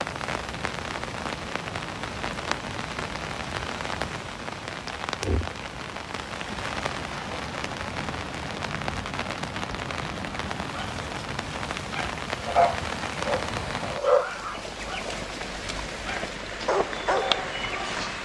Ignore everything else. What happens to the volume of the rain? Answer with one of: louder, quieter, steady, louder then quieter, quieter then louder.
steady.